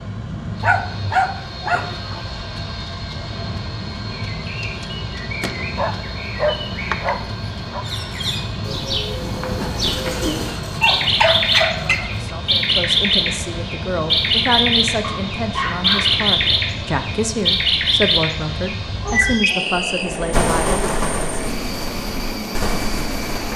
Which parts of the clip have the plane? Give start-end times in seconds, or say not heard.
0.0-23.5.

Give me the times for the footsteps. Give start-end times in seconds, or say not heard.
not heard.